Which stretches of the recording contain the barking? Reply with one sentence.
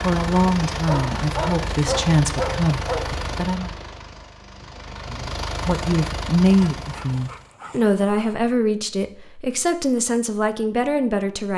You can hear the barking from 0.7 to 3.1 s and from 6.8 to 8.3 s.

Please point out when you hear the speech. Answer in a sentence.
The speech can be heard from 0.0 to 3.7 s and from 5.0 to 11.5 s.